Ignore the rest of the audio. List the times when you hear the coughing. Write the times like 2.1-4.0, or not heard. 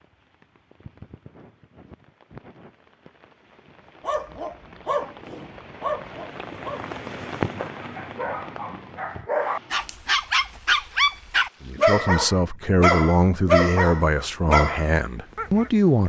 not heard.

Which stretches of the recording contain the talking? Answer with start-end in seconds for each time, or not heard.
11.6-16.0.